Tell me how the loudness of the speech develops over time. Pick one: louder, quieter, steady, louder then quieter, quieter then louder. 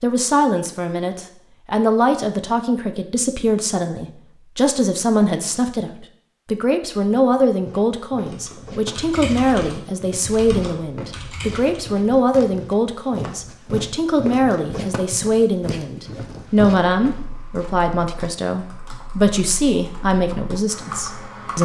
steady.